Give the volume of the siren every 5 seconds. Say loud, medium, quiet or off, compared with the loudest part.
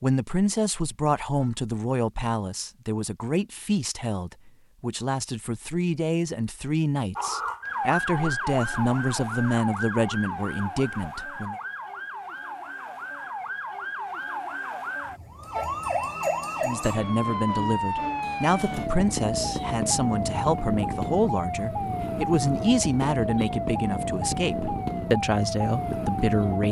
off, loud, medium, loud, loud, loud.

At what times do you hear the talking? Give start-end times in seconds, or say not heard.
0.0-11.6, 16.6-26.6.